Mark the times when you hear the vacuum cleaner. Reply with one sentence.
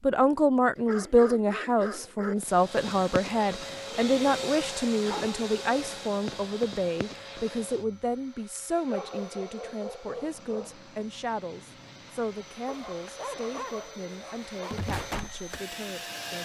The vacuum cleaner can be heard from 2.4 to 16.4 s.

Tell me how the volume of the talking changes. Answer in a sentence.
The volume of the talking goes down.